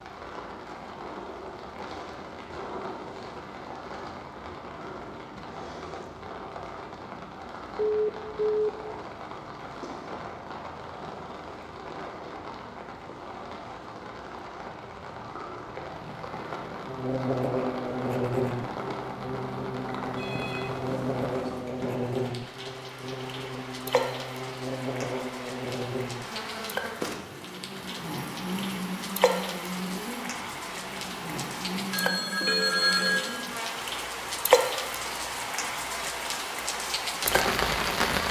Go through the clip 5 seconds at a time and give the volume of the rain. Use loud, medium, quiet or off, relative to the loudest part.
medium, medium, medium, medium, medium, medium, loud, loud.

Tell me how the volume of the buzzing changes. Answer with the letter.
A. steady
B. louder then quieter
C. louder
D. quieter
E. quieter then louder
D.